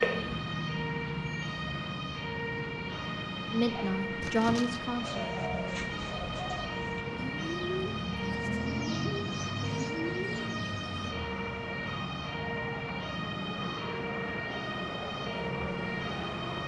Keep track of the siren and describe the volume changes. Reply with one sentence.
The volume of the siren stays about the same.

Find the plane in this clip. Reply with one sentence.
The plane can be heard from 0.2 to 16.6 s.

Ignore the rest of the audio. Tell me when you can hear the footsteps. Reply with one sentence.
You can't hear the footsteps here.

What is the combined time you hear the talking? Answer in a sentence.
You can hear the talking for 2 seconds altogether.